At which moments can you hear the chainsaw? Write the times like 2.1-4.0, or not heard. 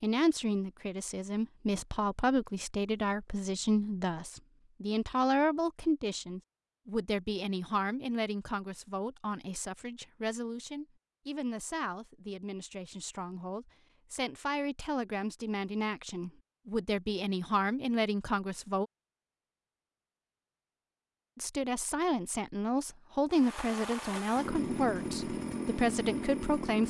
23.3-26.8.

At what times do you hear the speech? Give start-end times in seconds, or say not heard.
0.0-18.9, 21.4-26.8.